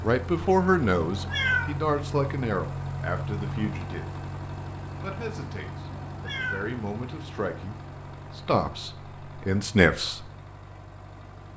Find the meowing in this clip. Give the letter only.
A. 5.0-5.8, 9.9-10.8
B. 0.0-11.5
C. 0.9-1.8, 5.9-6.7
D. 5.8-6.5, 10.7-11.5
C.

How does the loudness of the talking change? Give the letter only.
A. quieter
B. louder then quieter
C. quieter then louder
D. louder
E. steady
C.